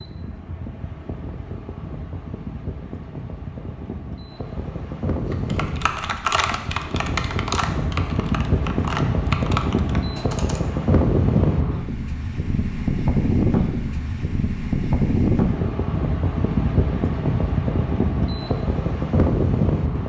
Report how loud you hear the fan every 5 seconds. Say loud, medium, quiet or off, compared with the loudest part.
quiet, loud, loud, loud.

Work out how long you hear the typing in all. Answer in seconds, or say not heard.
5 s.